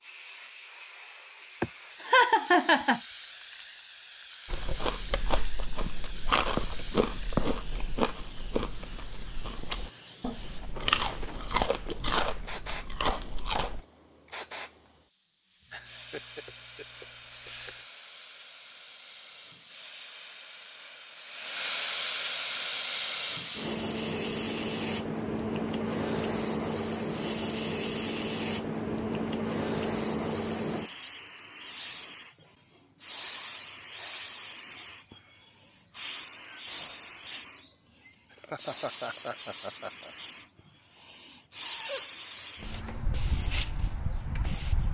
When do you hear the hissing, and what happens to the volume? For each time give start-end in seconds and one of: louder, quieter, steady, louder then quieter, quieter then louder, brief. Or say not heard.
0.0-44.9 louder.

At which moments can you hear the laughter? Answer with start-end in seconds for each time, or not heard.
1.6-3.0, 15.7-17.8, 38.3-40.1.